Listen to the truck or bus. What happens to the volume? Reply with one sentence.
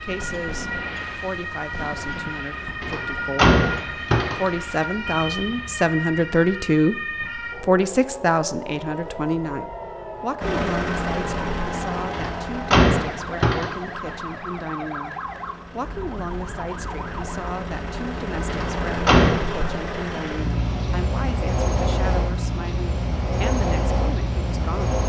The volume of the truck or bus goes down, then up.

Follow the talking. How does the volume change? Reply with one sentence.
The loudness of the talking goes up, then down.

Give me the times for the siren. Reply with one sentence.
You can hear the siren from 0.0 to 17.5 s.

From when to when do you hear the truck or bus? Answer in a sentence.
The truck or bus can be heard from 10.4 to 25.0 s.